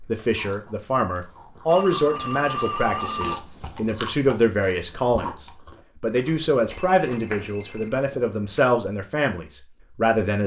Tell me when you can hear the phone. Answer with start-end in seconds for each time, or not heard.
1.6-3.4, 6.7-8.0.